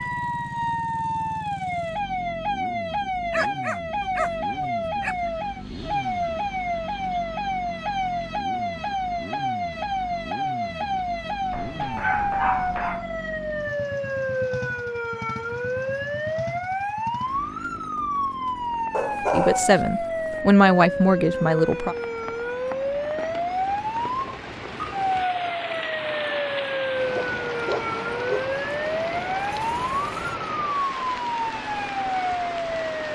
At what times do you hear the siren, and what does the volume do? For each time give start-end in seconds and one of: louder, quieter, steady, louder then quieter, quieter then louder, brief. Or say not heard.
0.0-33.1 steady.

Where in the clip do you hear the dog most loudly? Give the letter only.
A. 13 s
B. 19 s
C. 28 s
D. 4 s
B.